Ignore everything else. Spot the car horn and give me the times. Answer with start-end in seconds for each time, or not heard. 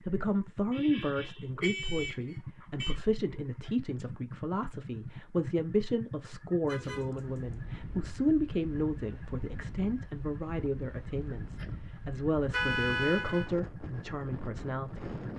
1.6-3.0, 6.7-7.5, 12.5-13.5.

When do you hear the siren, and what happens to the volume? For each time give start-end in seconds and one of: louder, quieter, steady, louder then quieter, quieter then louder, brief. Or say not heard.
not heard.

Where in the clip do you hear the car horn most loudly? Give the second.
13 s.